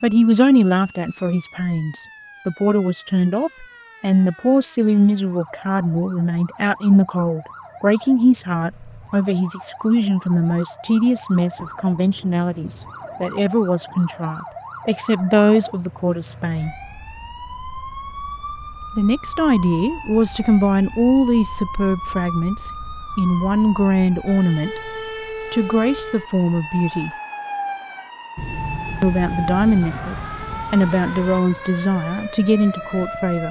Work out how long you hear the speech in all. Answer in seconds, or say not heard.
29 s.